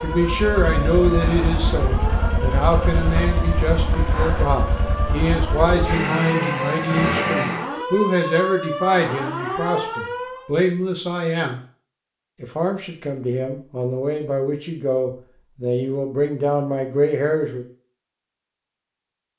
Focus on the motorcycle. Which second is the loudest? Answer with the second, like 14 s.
7 s.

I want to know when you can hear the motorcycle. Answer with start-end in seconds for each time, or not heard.
0.0-7.7.